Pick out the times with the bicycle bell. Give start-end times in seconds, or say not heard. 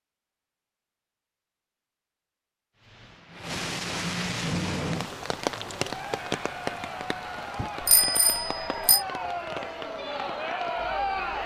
7.5-9.1.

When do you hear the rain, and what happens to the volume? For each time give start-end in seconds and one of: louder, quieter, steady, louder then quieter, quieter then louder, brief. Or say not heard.
2.8-11.4 quieter.